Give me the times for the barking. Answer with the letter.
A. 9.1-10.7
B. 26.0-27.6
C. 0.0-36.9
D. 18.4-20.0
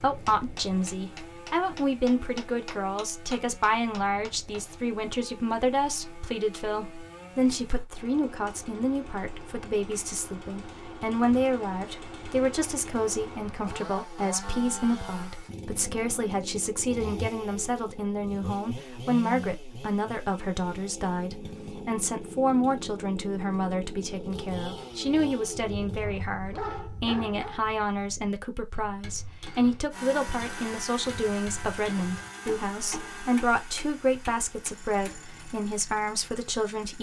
B.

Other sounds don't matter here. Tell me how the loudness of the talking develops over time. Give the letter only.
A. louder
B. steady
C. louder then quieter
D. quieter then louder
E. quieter
B.